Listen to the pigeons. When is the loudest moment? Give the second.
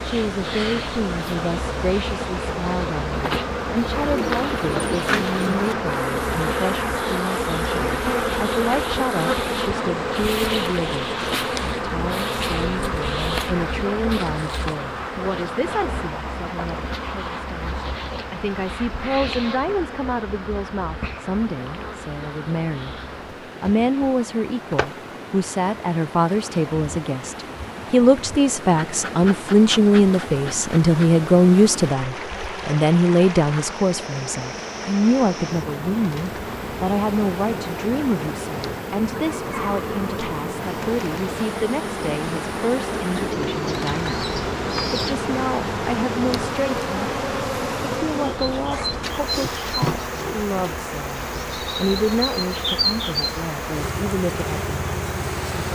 5 s.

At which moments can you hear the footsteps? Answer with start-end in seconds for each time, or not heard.
not heard.